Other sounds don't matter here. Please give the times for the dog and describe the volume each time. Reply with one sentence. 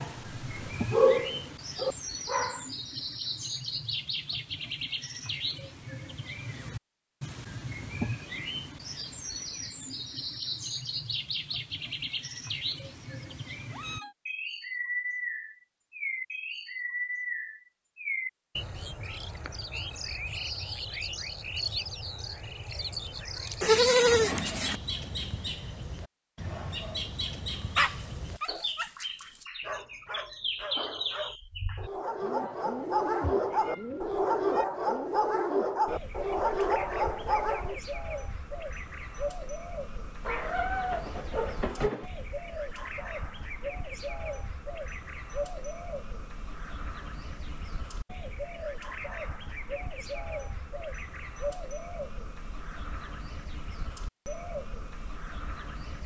The dog can be heard briefly from 0.0 to 2.7 s; and from 27.8 to 37.8 s, getting louder.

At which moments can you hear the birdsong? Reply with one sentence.
The birdsong can be heard from 0.0 to 56.0 s.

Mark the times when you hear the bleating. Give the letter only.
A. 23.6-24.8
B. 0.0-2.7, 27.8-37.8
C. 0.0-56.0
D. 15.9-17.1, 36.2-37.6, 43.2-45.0
A.